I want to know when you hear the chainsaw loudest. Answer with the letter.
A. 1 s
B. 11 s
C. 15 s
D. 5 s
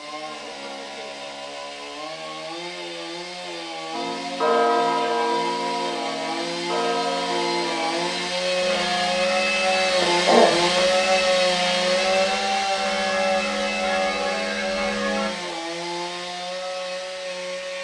B.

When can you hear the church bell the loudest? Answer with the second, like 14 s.
5 s.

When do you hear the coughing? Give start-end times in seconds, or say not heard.
9.9-11.1.